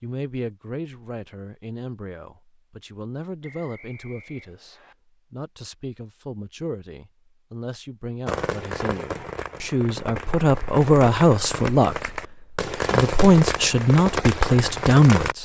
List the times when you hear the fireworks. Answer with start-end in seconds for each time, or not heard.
8.2-15.3.